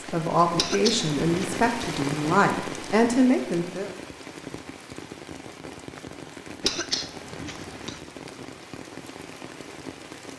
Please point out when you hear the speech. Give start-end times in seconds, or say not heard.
0.1-3.9.